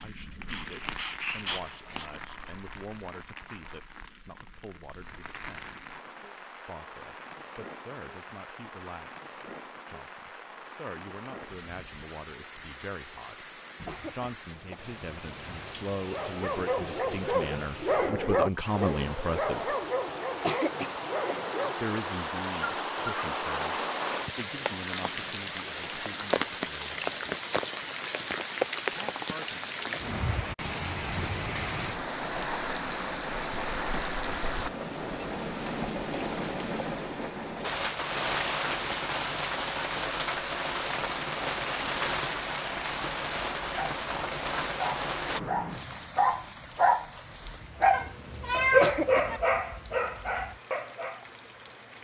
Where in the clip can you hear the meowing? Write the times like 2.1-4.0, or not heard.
47.9-49.4.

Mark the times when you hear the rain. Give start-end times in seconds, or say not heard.
0.0-51.9.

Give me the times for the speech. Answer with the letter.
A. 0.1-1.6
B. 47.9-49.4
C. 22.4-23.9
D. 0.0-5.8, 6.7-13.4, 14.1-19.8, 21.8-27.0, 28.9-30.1
D.